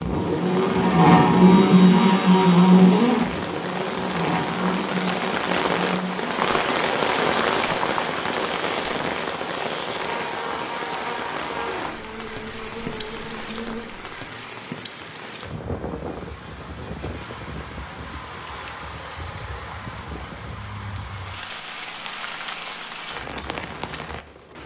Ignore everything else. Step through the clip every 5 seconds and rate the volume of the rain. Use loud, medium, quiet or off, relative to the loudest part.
medium, loud, medium, medium, medium.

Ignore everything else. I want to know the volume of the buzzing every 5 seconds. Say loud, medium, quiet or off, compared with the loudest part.
loud, quiet, quiet, off, off.